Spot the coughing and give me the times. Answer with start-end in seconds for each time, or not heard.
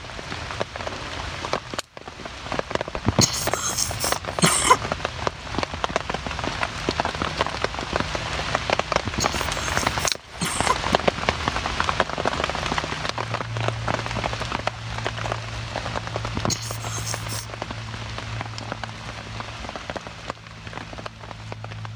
3.0-4.8, 8.9-10.9, 16.2-17.4.